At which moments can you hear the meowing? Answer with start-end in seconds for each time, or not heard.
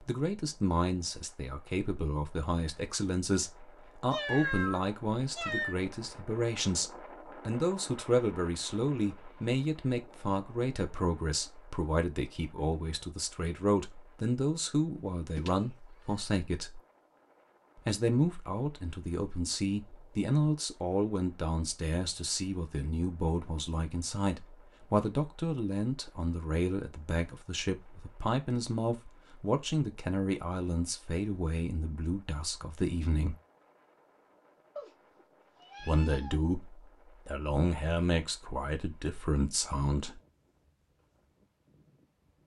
4.1-5.8, 15.3-16.2, 34.8-36.4.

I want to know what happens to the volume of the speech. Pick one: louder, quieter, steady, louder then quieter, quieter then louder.
steady.